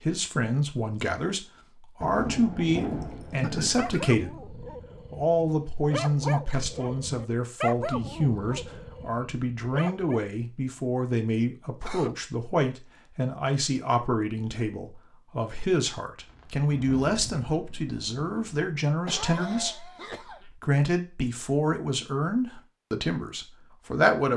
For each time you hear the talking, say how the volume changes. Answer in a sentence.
The talking can be heard from 0.0 to 24.3 s, at a steady volume.